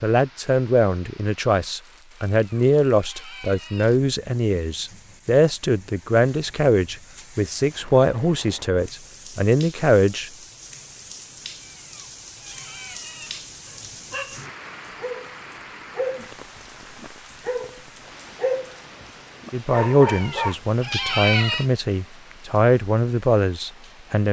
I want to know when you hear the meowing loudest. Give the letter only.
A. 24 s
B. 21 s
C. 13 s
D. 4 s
B.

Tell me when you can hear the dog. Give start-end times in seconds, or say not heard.
13.7-20.6.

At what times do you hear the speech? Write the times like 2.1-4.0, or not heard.
0.0-10.3, 19.5-24.2.